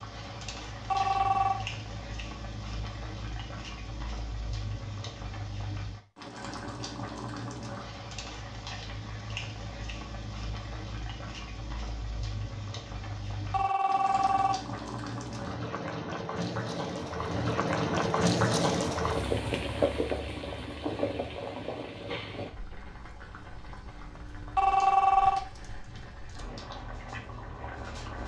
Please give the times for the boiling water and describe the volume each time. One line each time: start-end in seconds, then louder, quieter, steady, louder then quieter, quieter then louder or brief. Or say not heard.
0.0-28.2 louder then quieter.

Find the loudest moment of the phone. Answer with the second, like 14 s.
25 s.